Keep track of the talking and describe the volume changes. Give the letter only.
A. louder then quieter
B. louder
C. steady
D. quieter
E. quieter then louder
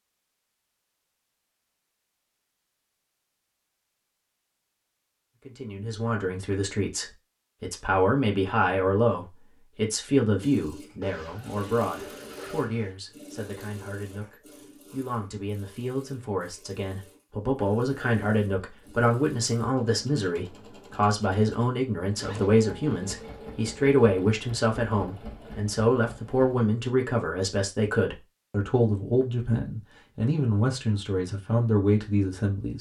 E.